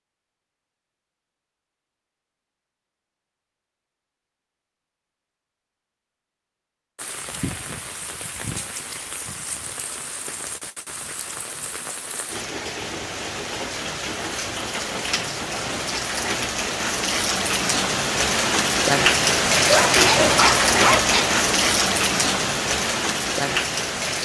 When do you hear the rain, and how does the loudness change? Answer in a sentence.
You can hear the rain from 7.0 to 24.1 s, getting louder.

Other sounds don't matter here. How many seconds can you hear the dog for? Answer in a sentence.
You can hear the dog for 2 seconds altogether.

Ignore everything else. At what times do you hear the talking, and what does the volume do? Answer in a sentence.
You can't hear the talking here.